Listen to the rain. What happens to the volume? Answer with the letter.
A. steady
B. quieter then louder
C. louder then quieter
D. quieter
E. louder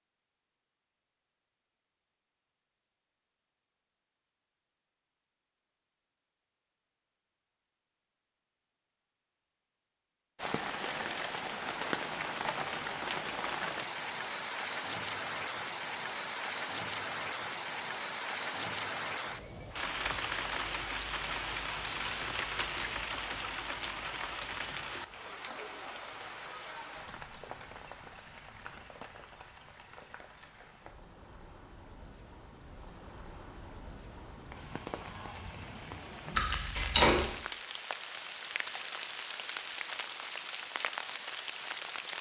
B.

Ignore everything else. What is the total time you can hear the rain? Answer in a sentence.
You can hear the rain for 32 seconds altogether.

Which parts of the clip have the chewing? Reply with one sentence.
You can hear the chewing from 36.4 to 37.2 s.